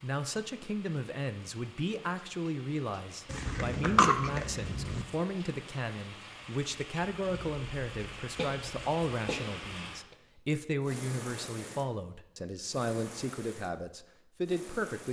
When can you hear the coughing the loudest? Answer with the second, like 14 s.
4 s.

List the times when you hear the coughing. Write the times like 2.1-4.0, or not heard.
3.3-5.0, 8.3-10.2.